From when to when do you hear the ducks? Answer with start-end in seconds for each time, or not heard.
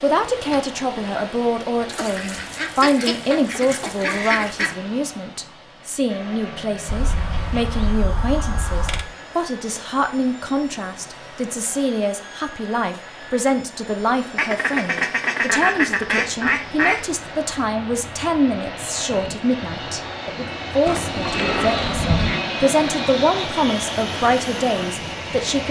1.9-4.8, 6.8-9.1, 14.3-17.1, 20.9-22.4.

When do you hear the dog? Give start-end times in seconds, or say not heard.
not heard.